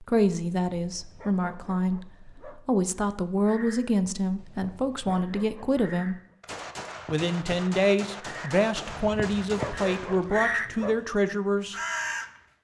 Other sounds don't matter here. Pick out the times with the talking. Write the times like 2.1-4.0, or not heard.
0.0-6.2, 7.1-11.8.